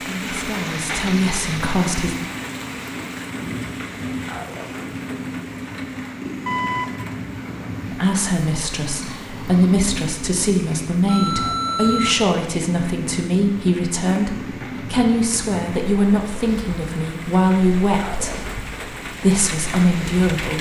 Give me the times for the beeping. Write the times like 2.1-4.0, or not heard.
6.5-7.0, 11.1-12.2.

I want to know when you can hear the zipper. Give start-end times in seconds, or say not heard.
not heard.